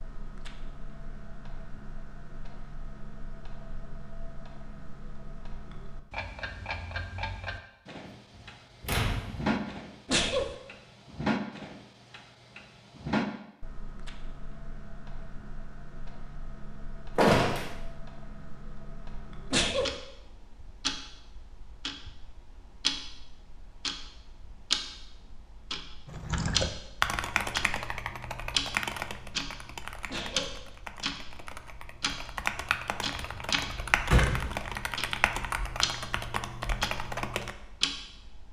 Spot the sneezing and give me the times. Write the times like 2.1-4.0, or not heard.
10.1-10.6, 19.5-20.0, 30.1-30.6.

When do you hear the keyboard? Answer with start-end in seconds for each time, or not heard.
26.1-37.5.